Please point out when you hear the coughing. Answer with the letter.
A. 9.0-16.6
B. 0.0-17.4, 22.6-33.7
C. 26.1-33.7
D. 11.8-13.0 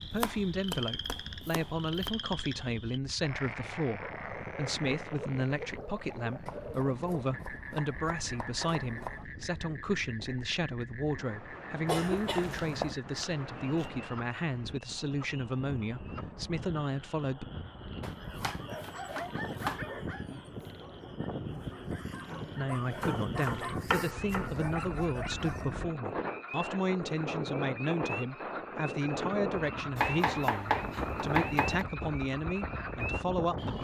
D.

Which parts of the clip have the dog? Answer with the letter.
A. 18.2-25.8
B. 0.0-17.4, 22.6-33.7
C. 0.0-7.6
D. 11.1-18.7
A.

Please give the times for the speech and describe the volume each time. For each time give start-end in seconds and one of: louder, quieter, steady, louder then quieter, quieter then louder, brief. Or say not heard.
0.0-17.4 steady
22.6-33.7 steady.